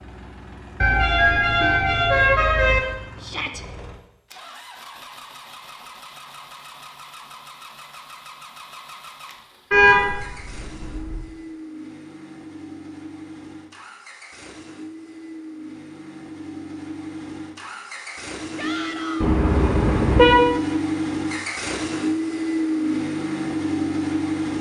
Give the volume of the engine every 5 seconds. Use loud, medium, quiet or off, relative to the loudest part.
quiet, quiet, quiet, medium, loud.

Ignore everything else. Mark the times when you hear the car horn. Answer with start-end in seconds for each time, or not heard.
0.8-2.8, 9.7-11.2, 19.2-20.4.